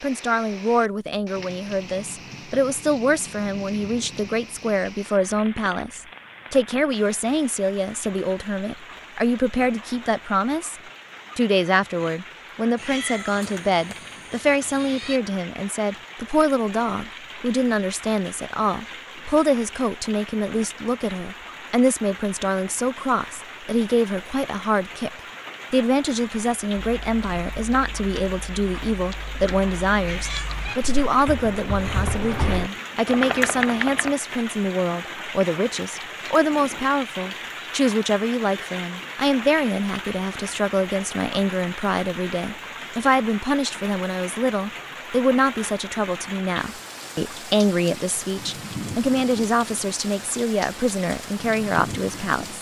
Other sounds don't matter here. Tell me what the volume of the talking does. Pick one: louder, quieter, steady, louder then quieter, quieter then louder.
steady.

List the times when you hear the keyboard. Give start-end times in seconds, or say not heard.
26.8-34.1.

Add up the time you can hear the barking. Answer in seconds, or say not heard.
not heard.